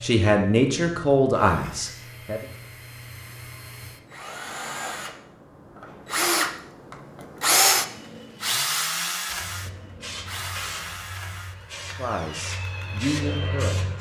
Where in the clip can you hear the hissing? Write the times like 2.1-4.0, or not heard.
9.3-13.9.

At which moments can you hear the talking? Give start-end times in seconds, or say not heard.
0.0-2.4, 11.9-13.8.